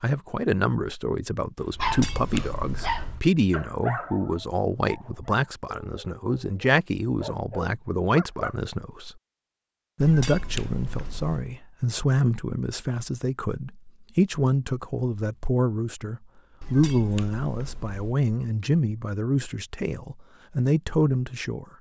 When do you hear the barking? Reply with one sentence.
The barking can be heard from 1.6 to 8.6 s.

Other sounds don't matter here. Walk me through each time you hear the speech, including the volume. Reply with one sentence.
You can hear the speech from 0.0 to 9.2 s, at a steady volume; and from 10.0 to 21.6 s, at a steady volume.